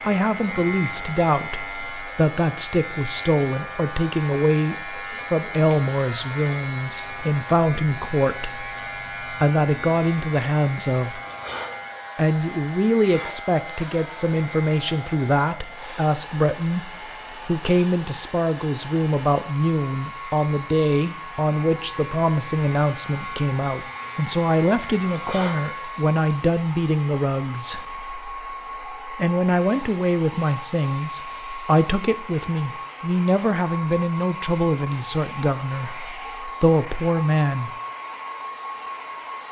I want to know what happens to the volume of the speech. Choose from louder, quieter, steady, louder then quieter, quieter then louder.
steady.